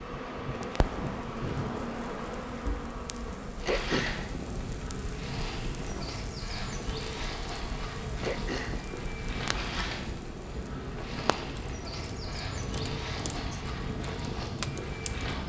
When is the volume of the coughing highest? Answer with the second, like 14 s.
4 s.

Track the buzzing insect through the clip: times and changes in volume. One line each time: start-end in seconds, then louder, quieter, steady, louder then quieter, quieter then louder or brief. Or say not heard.
0.0-15.4 steady.